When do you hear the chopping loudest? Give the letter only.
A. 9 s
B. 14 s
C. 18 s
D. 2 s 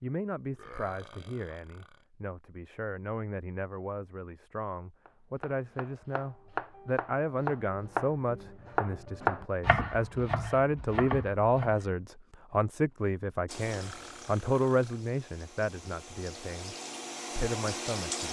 A.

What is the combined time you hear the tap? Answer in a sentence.
You can hear the tap for 5 seconds altogether.